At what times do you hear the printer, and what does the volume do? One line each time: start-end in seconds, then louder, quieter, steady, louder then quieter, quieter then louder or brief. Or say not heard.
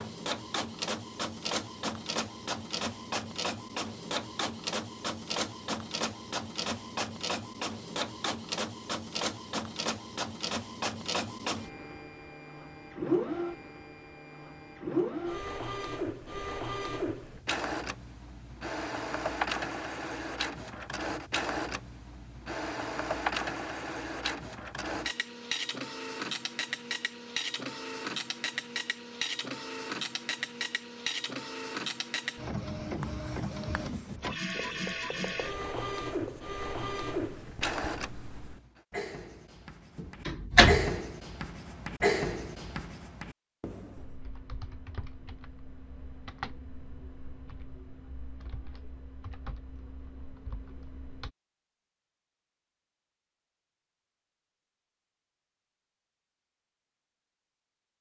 0.0-38.8 steady.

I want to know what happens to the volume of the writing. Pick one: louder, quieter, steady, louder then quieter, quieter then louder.
louder.